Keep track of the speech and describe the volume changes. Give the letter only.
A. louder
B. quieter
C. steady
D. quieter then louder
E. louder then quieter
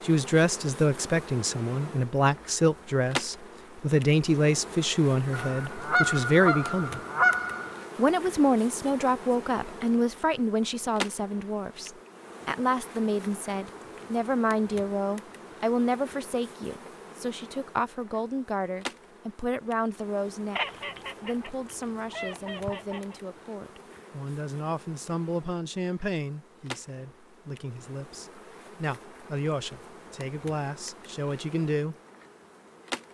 B.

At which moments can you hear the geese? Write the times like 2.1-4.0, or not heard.
5.3-7.8, 20.6-23.1.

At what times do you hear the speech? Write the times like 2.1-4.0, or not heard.
0.0-7.0, 8.0-31.9.